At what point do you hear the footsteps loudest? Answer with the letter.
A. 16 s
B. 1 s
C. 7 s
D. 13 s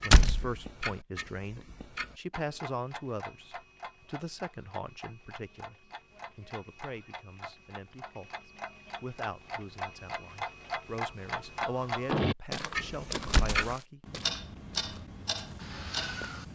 D.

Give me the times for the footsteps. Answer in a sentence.
You can hear the footsteps from 12.3 to 16.5 s.